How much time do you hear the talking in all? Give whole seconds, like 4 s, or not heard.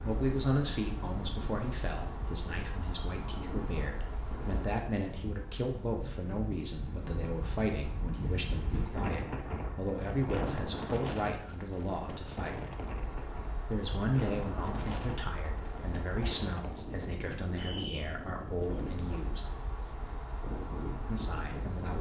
19 s.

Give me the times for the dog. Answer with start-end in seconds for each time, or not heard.
not heard.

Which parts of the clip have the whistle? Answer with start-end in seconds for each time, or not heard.
not heard.